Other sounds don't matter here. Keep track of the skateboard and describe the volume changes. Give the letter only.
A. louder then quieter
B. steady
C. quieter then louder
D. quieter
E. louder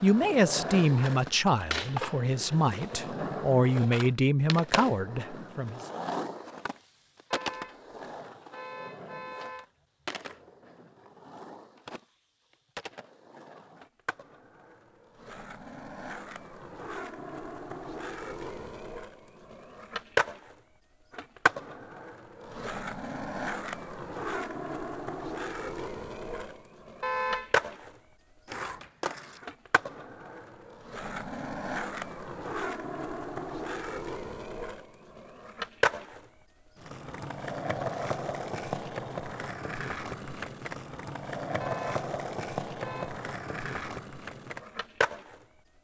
C.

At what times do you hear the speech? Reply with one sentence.
The speech can be heard from 0.0 to 5.8 s.